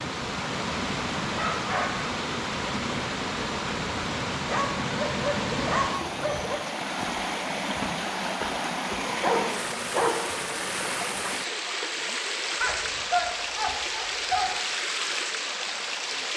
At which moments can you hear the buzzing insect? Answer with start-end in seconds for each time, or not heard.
not heard.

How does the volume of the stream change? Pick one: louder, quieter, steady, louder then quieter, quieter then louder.
steady.